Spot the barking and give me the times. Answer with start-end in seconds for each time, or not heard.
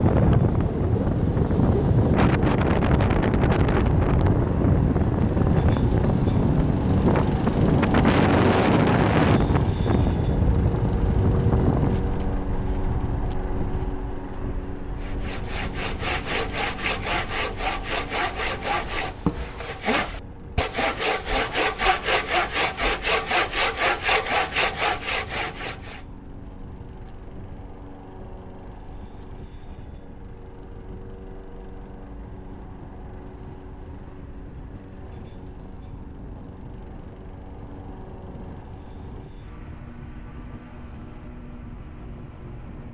not heard.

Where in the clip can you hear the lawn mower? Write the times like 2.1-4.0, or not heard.
0.0-42.8.